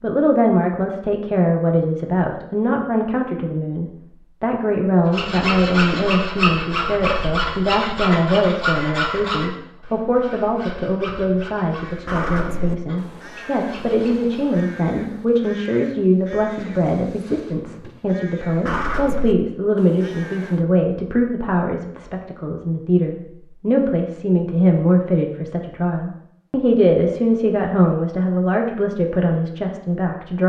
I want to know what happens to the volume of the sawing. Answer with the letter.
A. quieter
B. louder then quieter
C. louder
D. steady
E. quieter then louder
A.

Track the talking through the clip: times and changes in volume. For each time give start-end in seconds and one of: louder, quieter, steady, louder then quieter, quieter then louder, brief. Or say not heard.
0.0-30.4 steady.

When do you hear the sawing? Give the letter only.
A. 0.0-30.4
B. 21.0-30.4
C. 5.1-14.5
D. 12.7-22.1
C.